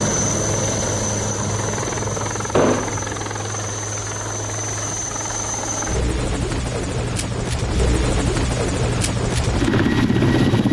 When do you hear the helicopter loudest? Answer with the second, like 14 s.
10 s.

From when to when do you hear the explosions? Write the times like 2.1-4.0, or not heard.
2.5-3.0.